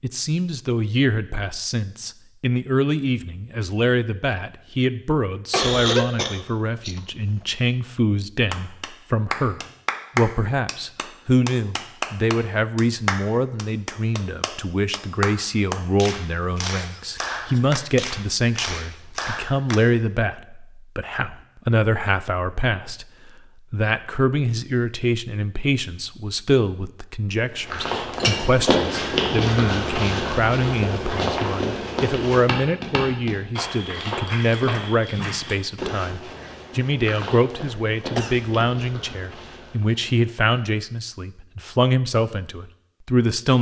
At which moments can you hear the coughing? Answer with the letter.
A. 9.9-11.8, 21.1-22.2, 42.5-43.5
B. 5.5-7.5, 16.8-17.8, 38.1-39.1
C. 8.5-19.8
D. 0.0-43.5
B.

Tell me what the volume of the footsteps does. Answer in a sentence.
The loudness of the footsteps goes down.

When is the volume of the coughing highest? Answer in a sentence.
The volume of the coughing peaks at 6 seconds.